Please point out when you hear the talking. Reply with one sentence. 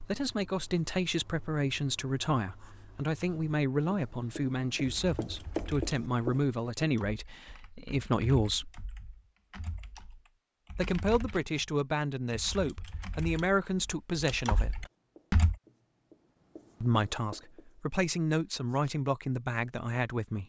You can hear the talking from 0.0 to 8.7 s, from 10.8 to 14.8 s and from 16.8 to 20.4 s.